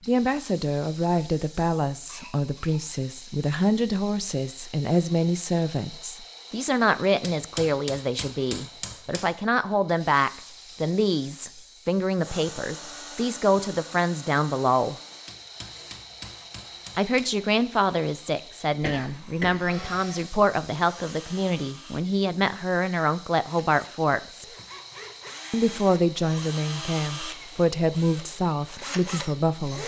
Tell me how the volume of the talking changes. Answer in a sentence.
The loudness of the talking stays about the same.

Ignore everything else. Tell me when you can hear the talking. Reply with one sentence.
The talking can be heard from 0.1 to 14.9 s, from 16.9 to 24.4 s and from 25.5 to 29.8 s.